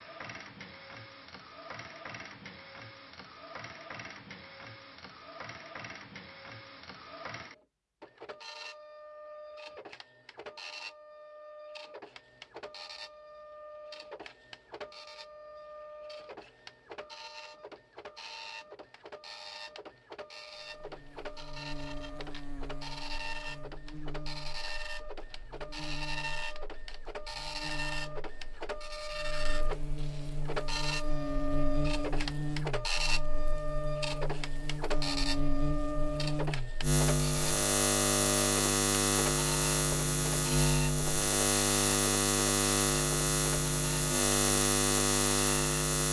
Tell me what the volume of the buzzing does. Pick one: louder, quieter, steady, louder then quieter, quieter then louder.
louder.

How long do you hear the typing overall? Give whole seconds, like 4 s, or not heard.
not heard.